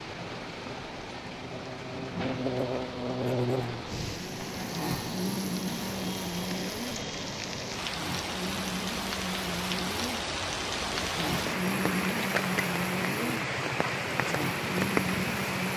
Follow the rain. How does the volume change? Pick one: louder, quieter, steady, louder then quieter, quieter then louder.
louder.